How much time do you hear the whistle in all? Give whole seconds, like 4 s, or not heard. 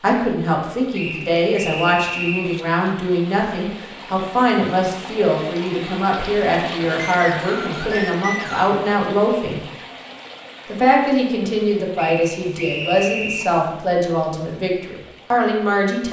5 s.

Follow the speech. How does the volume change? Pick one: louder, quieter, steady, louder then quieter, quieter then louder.
steady.